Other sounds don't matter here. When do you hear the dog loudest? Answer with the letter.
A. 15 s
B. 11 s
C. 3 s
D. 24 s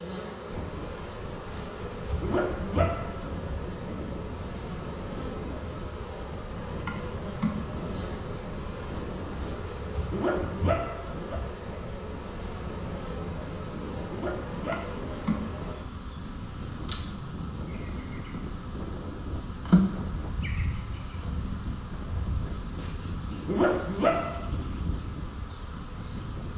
D.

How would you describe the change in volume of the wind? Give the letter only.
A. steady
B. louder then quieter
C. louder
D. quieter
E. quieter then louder
A.